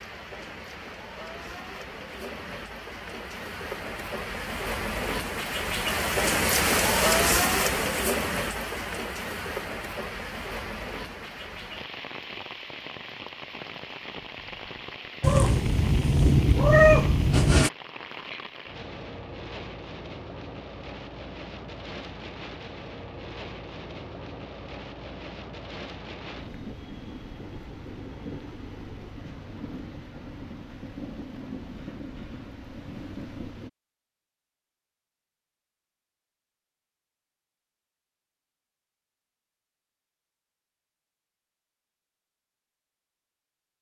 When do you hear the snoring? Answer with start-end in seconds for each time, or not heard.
not heard.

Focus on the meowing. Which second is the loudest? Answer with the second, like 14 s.
17 s.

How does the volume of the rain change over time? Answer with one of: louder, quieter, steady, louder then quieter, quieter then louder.
quieter.